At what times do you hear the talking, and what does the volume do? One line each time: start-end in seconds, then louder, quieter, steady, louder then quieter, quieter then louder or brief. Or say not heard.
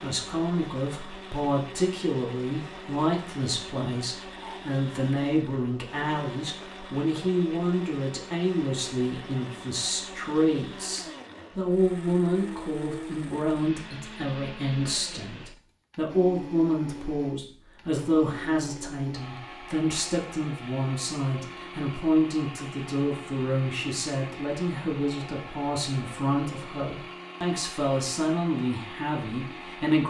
0.0-30.0 steady.